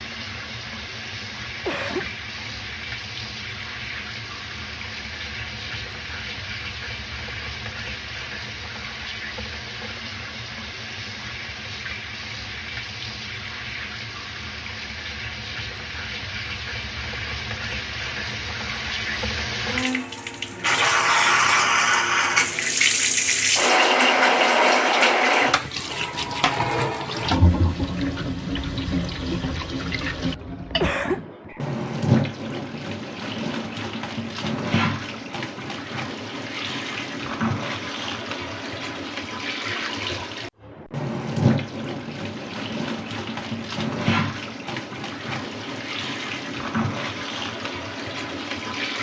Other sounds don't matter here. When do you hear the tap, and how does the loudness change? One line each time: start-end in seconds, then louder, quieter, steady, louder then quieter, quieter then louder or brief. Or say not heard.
0.0-48.9 louder then quieter.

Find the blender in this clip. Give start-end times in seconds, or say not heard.
not heard.